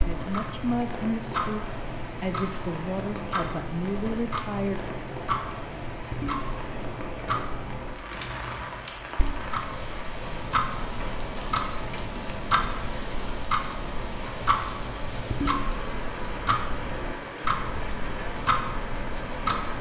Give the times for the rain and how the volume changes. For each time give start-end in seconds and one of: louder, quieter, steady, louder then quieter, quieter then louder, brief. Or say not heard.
0.0-19.7 steady.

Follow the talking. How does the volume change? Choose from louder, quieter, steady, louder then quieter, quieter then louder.
quieter then louder.